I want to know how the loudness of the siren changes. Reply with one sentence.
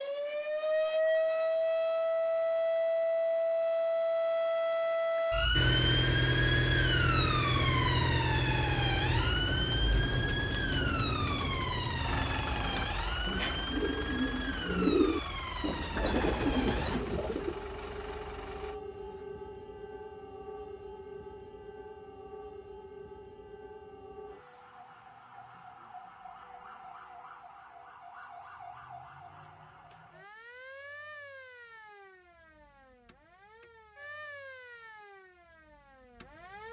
The volume of the siren goes down.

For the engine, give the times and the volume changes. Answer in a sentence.
The engine can be heard from 5.5 to 19.2 s, getting quieter.